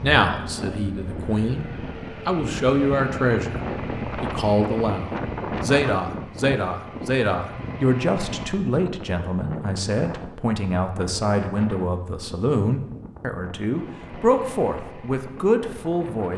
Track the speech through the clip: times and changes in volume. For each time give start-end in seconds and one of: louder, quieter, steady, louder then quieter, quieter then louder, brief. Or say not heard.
0.0-1.6 brief
2.2-3.6 brief
4.2-16.3 steady.